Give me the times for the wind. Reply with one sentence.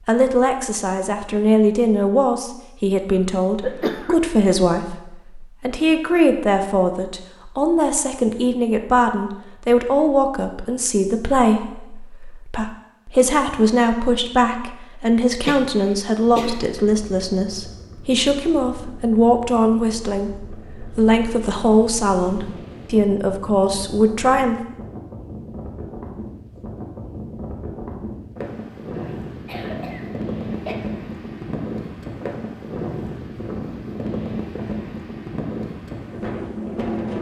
The wind can be heard from 16.2 to 37.1 s.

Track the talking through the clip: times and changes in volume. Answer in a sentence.
You can hear the talking from 0.1 to 24.6 s, at a steady volume.